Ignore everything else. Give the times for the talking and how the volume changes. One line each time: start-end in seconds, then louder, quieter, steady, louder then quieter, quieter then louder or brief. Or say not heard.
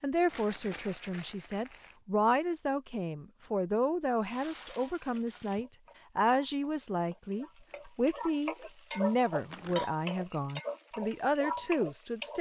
0.0-12.3 steady.